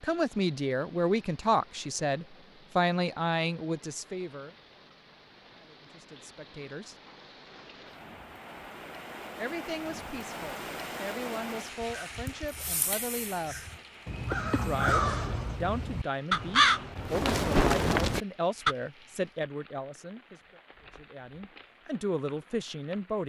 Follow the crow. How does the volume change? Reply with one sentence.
The loudness of the crow goes up.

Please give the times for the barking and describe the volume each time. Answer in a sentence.
You can't hear the barking here.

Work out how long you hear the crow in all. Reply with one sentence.
You can hear the crow for 7 seconds altogether.